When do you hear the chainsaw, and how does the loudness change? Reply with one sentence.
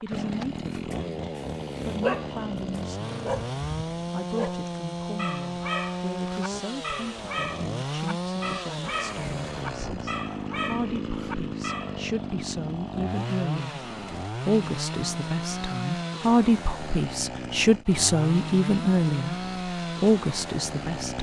You can hear the chainsaw from 0.0 to 21.1 s, at a steady volume.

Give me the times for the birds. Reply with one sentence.
The birds can't be heard in this clip.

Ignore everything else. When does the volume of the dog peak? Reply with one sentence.
The volume of the dog peaks at 2 seconds.